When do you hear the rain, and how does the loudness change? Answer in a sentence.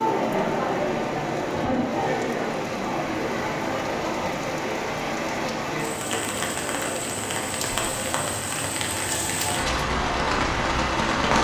You can hear the rain from 0.0 to 11.3 s, getting louder.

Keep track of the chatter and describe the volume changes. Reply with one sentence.
The volume of the chatter goes down.